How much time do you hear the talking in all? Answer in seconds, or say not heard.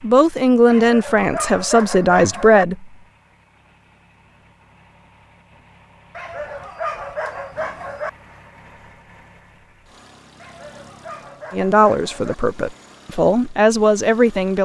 6 s.